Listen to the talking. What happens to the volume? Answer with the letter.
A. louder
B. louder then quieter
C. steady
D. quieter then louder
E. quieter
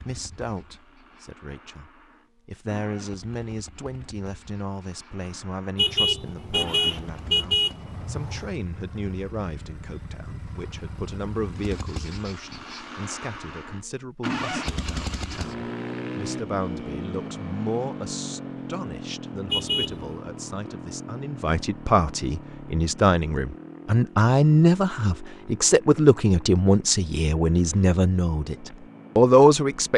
A.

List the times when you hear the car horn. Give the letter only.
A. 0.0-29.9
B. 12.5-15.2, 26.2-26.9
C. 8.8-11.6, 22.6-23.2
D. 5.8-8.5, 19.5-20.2
D.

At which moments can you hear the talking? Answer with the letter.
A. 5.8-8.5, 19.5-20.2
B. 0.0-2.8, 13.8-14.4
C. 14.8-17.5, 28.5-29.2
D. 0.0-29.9
D.